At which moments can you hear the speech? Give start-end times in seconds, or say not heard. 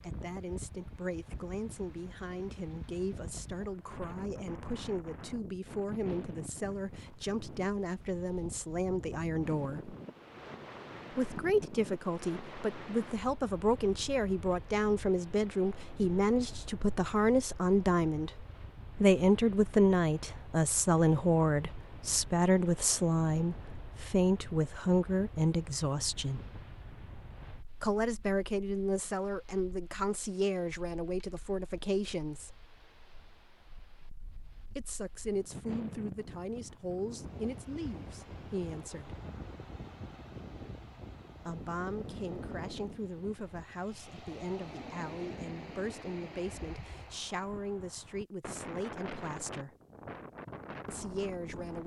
0.0-9.9, 11.1-26.4, 27.8-32.5, 34.8-39.2, 41.5-49.7, 50.9-51.8.